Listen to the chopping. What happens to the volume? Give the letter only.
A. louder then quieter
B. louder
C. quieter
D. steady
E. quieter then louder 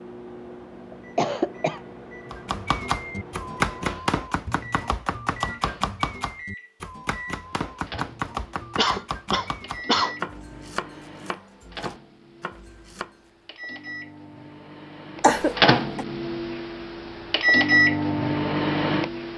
C.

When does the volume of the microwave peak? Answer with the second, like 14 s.
18 s.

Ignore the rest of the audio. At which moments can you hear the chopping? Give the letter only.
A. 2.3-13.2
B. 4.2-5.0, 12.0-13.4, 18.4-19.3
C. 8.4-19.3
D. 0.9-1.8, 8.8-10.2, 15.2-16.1
A.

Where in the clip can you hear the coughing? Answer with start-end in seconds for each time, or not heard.
0.9-1.8, 8.8-10.2, 15.2-16.1.